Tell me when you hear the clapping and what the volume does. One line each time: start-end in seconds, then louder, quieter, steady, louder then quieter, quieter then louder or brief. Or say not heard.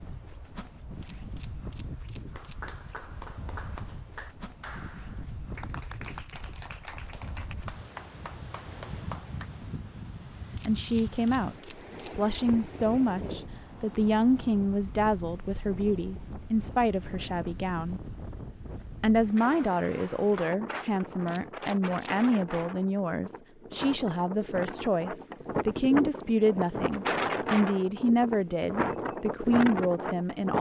2.3-9.5 steady.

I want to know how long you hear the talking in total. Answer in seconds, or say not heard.
18 s.